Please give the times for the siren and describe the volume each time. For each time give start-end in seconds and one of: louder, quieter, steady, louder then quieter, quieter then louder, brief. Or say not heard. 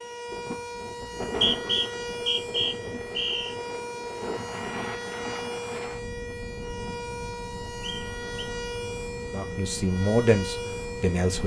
0.0-11.4 steady.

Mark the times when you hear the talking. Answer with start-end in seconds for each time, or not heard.
9.3-11.4.